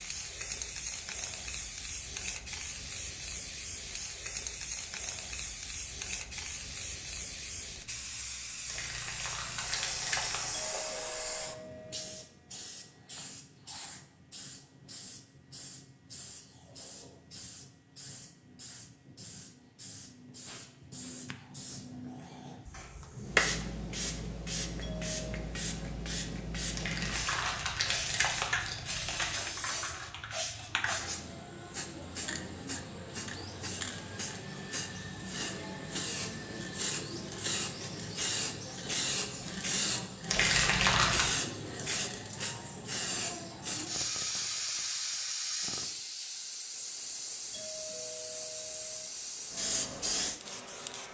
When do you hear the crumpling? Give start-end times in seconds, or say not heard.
8.7-10.7, 26.8-29.3, 40.2-41.4.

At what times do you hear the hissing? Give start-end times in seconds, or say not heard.
0.0-51.0.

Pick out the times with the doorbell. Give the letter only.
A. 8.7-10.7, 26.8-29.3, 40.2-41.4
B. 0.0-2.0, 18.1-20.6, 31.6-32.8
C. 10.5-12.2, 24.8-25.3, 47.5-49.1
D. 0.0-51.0
C.